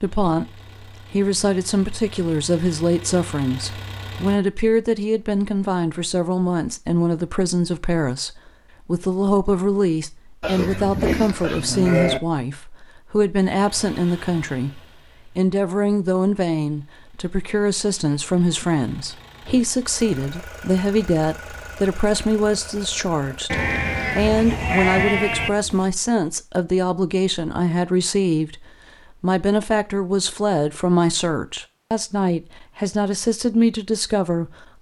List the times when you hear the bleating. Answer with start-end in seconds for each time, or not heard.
10.4-12.2, 23.5-25.5.